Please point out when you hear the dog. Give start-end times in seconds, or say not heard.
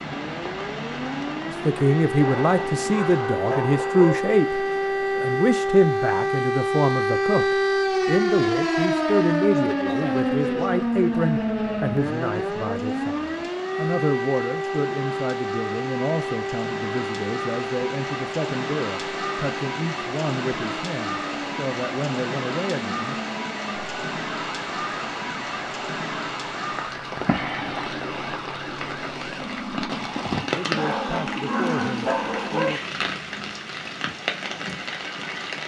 2.2-4.2, 30.8-32.8.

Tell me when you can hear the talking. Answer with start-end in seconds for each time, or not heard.
1.4-23.1, 30.4-32.8.